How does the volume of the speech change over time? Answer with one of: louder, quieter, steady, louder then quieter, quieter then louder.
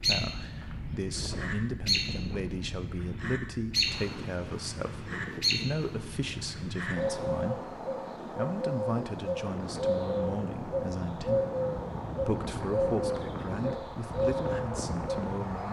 steady.